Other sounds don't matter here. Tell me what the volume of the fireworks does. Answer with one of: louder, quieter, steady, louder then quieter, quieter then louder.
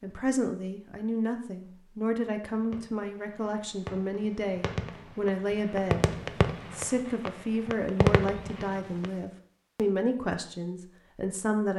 louder.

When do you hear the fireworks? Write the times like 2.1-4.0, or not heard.
2.2-9.1.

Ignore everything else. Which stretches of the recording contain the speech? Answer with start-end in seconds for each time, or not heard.
0.0-6.0, 6.7-11.7.